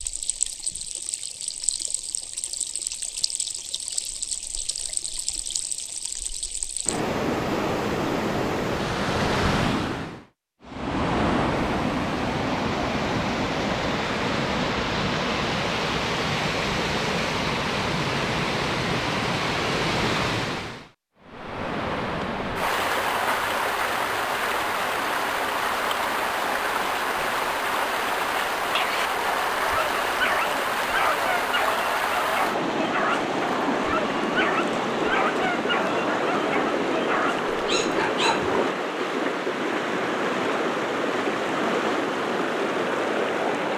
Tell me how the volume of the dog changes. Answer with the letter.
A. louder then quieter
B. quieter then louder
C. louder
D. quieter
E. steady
E.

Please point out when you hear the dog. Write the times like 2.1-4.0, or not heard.
28.6-38.5.